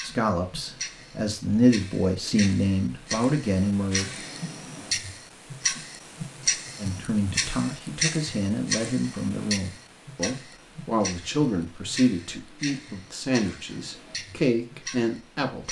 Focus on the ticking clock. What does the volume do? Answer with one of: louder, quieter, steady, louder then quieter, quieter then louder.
louder then quieter.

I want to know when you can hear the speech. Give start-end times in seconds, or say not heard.
0.0-4.1, 6.8-15.6.